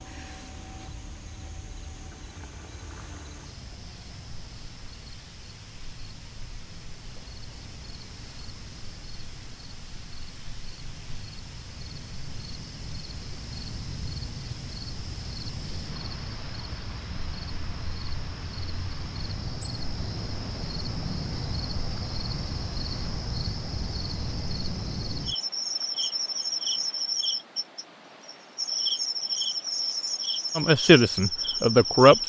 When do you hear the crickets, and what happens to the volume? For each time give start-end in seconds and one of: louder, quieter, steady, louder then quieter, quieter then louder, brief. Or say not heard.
0.0-32.2 louder.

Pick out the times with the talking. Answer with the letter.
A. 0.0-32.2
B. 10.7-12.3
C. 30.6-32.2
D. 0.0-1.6
C.